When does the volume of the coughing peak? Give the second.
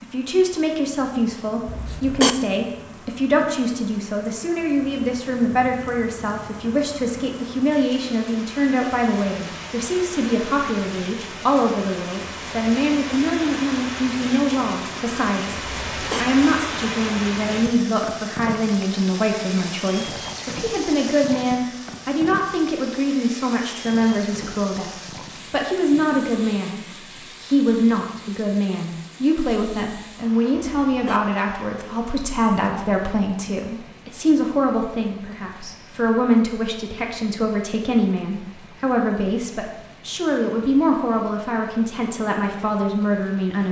2 s.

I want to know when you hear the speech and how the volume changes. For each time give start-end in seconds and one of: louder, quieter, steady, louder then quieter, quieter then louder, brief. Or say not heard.
0.0-43.6 steady.